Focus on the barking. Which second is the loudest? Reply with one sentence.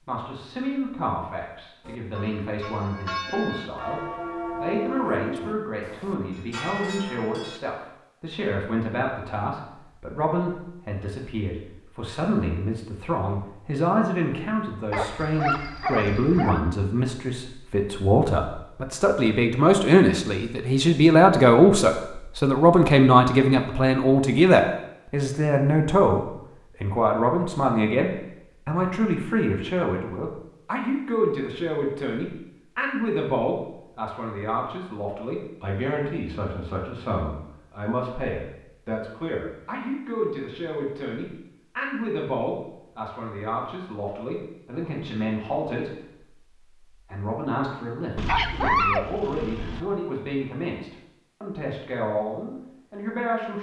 The volume of the barking peaks at 49 seconds.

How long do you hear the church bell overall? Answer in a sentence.
The church bell can be heard for 6 seconds in total.